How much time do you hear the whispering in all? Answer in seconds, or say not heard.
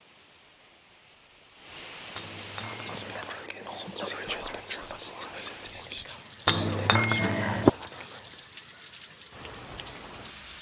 6 s.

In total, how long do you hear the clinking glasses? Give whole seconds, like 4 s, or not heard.
2 s.